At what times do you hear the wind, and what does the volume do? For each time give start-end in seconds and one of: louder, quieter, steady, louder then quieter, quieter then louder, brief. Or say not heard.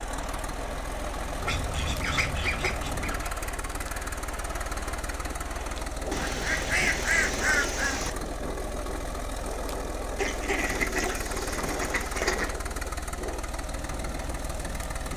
0.0-15.1 steady.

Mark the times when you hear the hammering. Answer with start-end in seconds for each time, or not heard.
not heard.